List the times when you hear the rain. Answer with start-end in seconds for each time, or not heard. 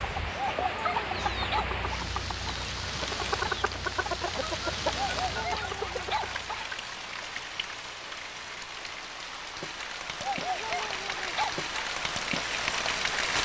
0.0-13.4.